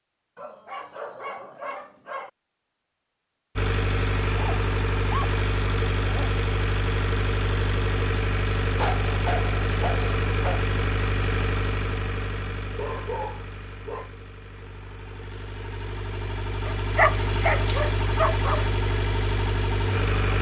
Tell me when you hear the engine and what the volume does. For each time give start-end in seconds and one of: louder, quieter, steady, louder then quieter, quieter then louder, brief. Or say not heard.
3.5-20.3 quieter then louder.